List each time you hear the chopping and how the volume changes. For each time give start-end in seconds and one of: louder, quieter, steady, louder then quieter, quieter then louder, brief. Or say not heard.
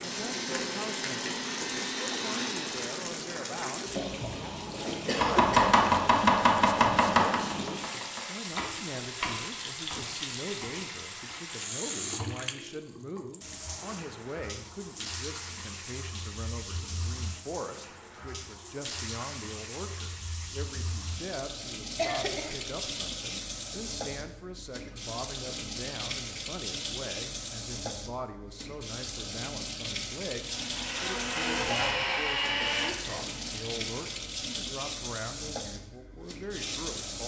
5.1-11.4 quieter.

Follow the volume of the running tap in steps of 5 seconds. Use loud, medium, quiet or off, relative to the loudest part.
loud, loud, loud, medium, loud, loud, loud, loud.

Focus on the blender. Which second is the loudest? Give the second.
32 s.